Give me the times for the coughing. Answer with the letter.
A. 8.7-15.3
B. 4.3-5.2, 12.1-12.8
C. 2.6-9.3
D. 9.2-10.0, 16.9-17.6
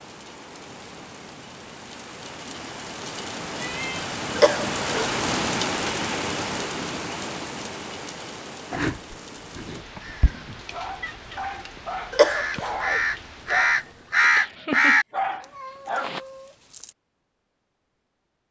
B.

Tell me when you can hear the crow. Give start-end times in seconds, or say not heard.
8.7-15.3.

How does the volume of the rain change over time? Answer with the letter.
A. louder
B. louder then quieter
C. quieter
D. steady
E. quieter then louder
B.